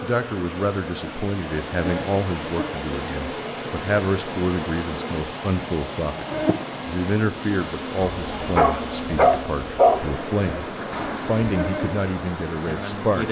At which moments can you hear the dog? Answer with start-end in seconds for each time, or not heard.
8.2-10.0.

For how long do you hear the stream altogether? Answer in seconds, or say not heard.
13 s.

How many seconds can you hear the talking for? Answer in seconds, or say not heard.
13 s.